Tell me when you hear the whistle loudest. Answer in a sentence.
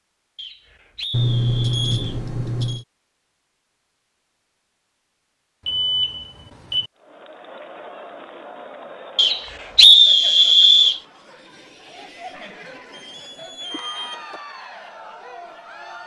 The volume of the whistle peaks at 10 seconds.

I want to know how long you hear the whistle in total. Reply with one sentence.
The whistle can be heard for 4 seconds in total.